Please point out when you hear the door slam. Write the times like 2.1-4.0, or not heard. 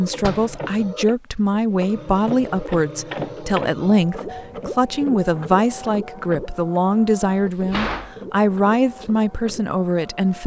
0.2-0.7, 7.3-8.2.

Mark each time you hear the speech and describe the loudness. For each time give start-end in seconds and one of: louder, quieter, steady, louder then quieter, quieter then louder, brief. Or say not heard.
0.0-10.4 steady.